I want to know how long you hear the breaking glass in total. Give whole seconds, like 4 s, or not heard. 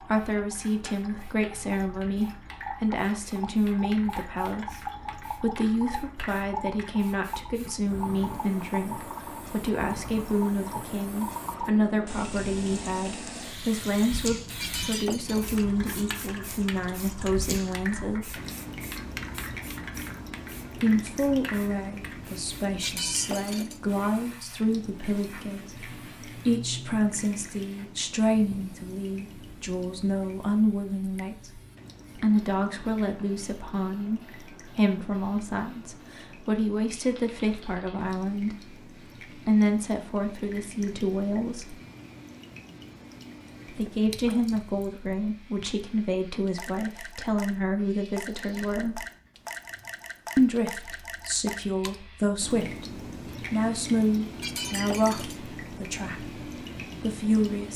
3 s.